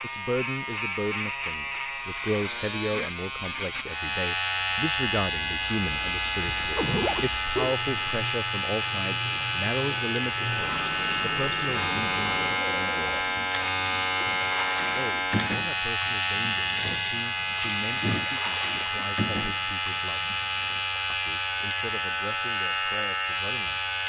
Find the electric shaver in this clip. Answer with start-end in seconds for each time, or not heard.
0.0-24.0.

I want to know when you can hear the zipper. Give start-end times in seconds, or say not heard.
6.5-7.4.